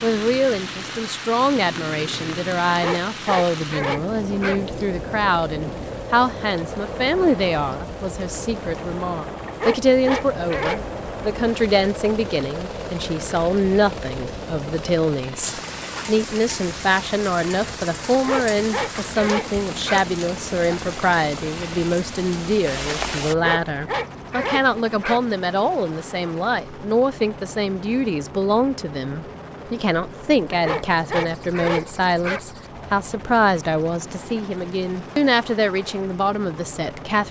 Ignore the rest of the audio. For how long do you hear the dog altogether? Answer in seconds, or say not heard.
9 s.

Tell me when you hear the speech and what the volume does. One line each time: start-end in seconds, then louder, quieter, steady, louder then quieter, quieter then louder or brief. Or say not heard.
0.0-37.2 steady.